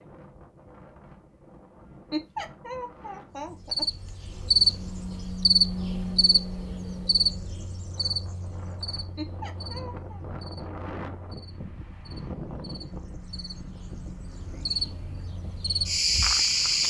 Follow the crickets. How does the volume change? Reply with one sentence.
The loudness of the crickets goes down, then up.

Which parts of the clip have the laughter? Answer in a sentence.
You can hear the laughter from 2.1 to 4.1 s and from 9.2 to 10.2 s.